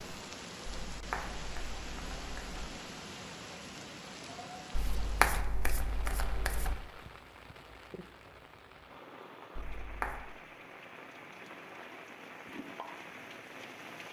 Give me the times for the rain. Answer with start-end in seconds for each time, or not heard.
0.0-14.0.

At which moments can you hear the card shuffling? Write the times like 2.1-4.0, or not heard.
0.9-2.6, 4.8-6.8, 9.6-10.2.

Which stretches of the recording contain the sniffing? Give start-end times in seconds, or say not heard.
not heard.